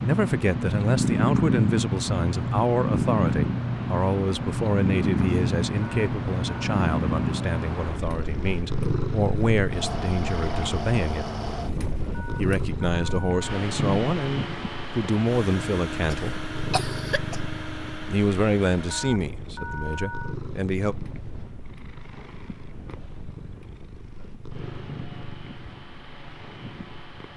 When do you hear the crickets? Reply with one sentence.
You can't hear the crickets here.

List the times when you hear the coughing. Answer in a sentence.
You can hear the coughing from 16.1 to 17.4 s.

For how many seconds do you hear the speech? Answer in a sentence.
You can hear the speech for 18 seconds altogether.